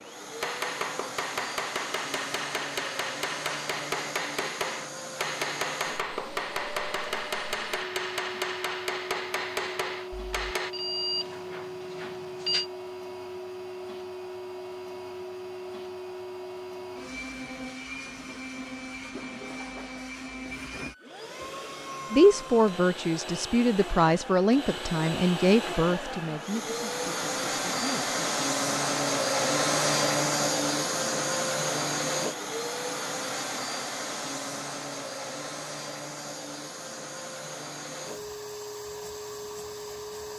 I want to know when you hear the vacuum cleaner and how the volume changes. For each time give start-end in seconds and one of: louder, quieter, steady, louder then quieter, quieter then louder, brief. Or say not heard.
0.0-40.3 louder then quieter.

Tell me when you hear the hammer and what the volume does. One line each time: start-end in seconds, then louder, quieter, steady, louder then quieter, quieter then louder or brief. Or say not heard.
0.4-10.8 steady.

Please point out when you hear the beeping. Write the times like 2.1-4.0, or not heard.
10.1-12.7.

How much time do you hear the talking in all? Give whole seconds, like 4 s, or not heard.
6 s.